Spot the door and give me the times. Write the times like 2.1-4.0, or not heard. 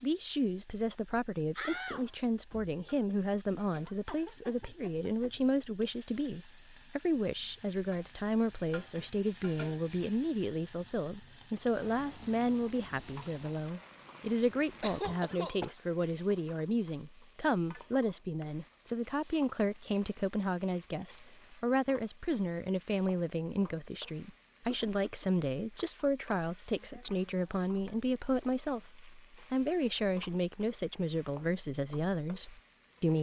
1.6-3.2.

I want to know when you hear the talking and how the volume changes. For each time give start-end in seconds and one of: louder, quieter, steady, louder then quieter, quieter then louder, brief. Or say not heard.
0.0-33.1 steady.